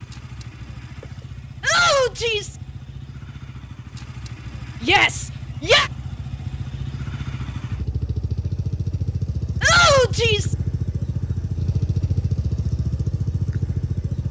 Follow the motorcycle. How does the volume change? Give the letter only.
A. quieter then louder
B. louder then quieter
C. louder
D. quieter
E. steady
C.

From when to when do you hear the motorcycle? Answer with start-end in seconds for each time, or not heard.
0.0-14.2.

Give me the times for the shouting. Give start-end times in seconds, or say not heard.
1.6-2.5, 4.8-5.9, 9.6-10.6.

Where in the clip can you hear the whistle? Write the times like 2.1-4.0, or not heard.
not heard.